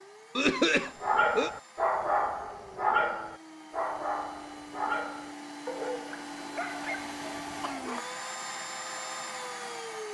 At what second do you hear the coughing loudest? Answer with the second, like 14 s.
1 s.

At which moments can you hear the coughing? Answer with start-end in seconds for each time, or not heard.
0.3-1.5, 6.6-8.0.